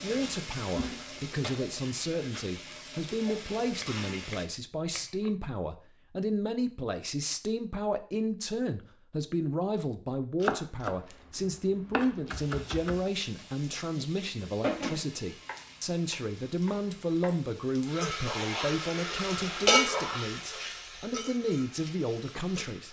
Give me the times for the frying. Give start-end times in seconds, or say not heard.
0.0-4.5, 12.3-22.8.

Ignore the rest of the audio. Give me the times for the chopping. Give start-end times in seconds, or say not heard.
3.7-5.3, 10.4-13.1, 15.4-17.4.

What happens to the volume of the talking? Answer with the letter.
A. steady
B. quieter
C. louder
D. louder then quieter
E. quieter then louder
A.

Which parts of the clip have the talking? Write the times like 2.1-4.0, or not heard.
0.0-22.8.